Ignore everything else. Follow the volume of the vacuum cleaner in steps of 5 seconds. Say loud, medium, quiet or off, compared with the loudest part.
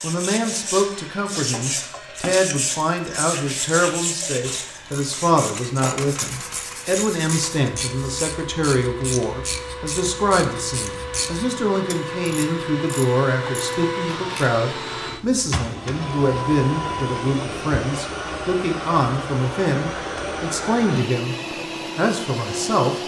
quiet, medium, loud, loud, loud.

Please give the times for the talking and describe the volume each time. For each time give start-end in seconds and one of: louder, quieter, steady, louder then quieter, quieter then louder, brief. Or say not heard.
0.0-23.0 steady.